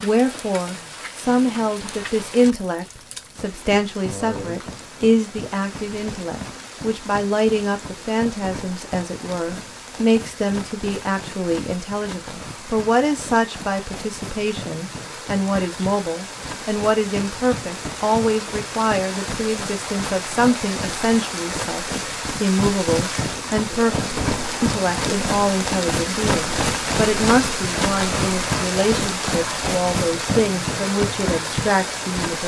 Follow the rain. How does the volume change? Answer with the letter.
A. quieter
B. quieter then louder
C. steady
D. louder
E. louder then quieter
D.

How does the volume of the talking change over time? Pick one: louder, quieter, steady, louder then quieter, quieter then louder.
steady.